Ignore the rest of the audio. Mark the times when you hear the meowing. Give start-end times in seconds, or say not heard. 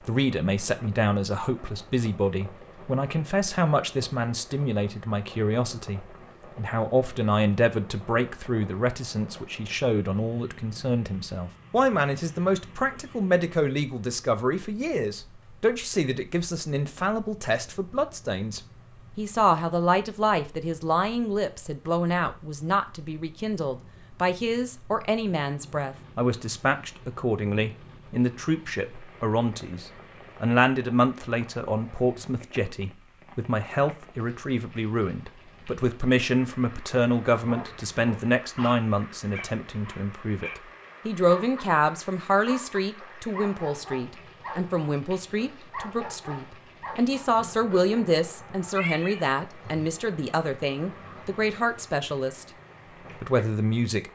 48.6-49.9.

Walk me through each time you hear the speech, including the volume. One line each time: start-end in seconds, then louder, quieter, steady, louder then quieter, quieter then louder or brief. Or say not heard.
0.1-52.5 steady
53.2-54.0 brief.